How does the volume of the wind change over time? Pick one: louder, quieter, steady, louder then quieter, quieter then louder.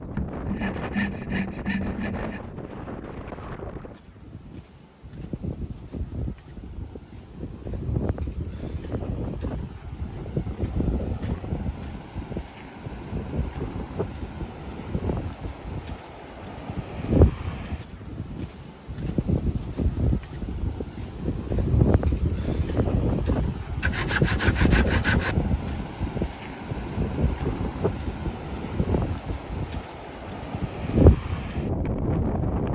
louder.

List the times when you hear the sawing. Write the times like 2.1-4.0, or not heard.
0.1-2.4, 23.8-25.4.